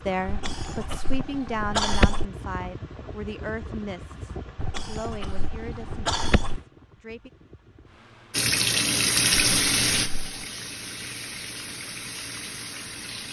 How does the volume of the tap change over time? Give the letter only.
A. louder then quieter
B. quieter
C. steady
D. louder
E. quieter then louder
B.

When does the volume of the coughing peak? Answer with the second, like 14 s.
2 s.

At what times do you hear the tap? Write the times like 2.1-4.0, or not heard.
8.3-13.2.